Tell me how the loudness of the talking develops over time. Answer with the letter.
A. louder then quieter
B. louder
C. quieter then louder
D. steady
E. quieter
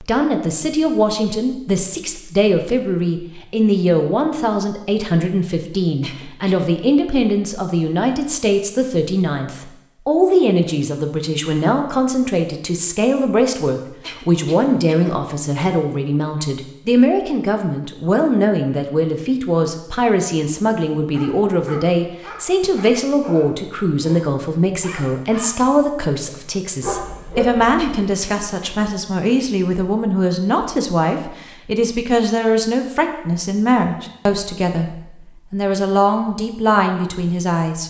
D.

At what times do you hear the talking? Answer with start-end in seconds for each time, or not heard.
0.0-37.8.